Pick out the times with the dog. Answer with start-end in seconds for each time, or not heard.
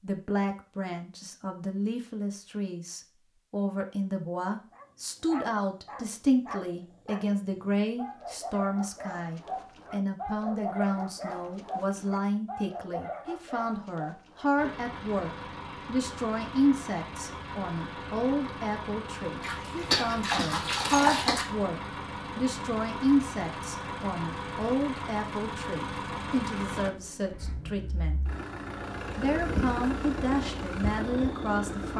4.7-14.7.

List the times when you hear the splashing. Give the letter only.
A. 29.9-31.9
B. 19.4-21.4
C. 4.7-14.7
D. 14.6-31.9
B.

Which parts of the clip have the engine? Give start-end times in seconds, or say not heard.
14.6-31.9.